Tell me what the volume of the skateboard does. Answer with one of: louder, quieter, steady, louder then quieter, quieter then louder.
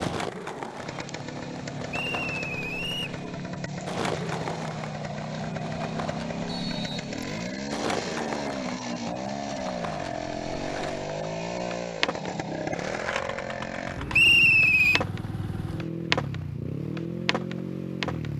louder.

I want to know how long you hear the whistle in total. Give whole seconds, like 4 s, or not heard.
3 s.